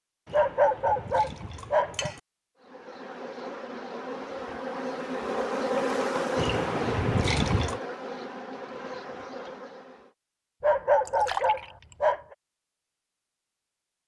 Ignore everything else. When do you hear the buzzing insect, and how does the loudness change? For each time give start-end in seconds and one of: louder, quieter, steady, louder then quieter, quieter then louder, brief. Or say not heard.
2.6-10.1 louder then quieter.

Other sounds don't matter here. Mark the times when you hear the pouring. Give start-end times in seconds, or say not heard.
0.2-2.2, 6.3-7.8, 11.1-11.9.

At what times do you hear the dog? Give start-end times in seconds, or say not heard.
0.3-2.1, 10.6-12.2.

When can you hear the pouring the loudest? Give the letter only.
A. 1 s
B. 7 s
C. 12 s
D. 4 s
B.